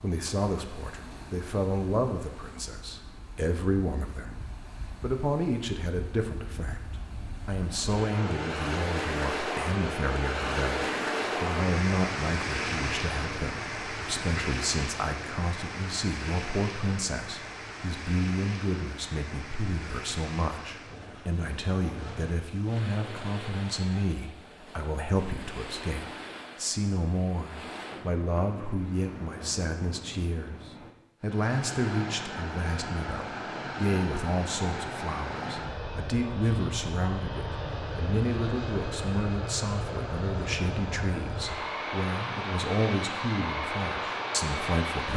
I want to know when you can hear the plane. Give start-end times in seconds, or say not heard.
31.2-45.1.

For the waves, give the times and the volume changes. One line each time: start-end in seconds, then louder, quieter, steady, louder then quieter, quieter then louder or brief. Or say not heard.
0.0-30.9 louder then quieter.